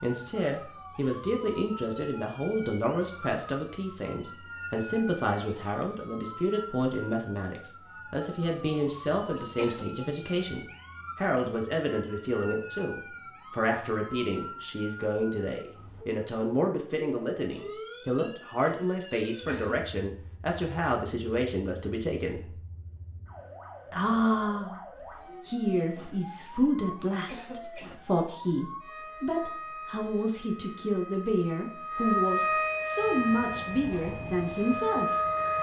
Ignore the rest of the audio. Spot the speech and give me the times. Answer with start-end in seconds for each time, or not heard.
0.0-22.6, 23.9-35.3.